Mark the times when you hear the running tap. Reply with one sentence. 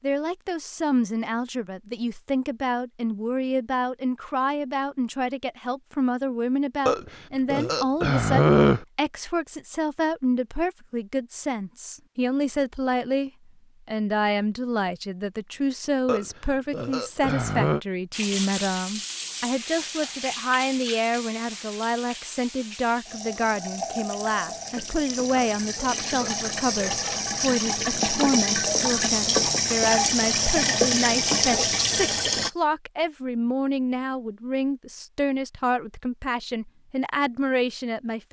You can hear the running tap from 18.1 to 32.5 s.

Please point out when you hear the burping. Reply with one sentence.
You can hear the burping from 6.8 to 8.8 s, from 16.1 to 17.8 s and from 26.2 to 27.2 s.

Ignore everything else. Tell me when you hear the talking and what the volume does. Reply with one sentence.
You can hear the talking from 0.0 to 38.2 s, at a steady volume.